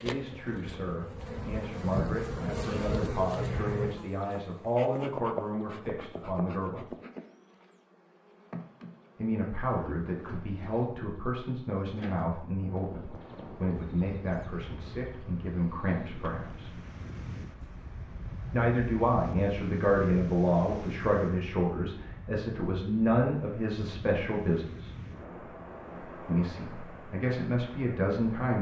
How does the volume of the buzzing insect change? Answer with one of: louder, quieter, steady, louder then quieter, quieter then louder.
quieter.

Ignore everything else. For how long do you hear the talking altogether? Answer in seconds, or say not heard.
23 s.